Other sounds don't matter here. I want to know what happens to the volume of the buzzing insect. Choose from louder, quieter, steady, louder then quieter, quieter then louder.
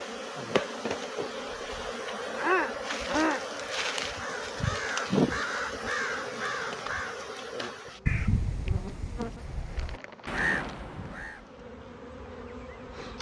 quieter.